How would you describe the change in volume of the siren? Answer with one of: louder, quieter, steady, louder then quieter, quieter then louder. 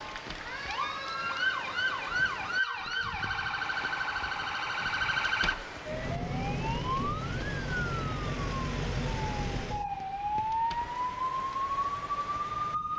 steady.